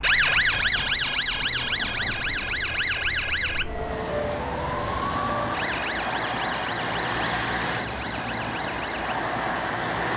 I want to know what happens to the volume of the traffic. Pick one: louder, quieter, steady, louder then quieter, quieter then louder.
louder.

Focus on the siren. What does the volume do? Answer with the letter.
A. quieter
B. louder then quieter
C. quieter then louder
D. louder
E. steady
A.